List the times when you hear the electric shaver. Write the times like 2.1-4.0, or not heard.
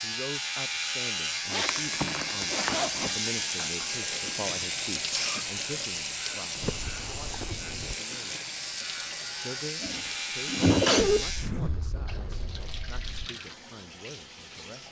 0.0-11.5.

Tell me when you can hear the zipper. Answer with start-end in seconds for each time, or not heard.
1.5-3.1, 6.6-8.0, 11.1-13.3.